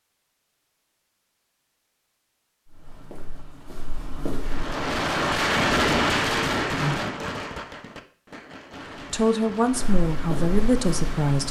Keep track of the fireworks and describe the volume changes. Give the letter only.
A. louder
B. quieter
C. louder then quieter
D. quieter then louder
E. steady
B.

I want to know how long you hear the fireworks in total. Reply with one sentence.
The fireworks can be heard for 7 seconds in total.